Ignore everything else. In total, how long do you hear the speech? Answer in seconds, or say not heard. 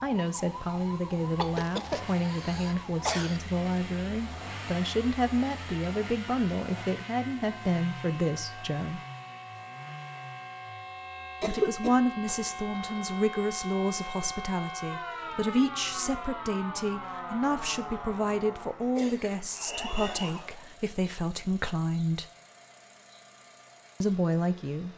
21 s.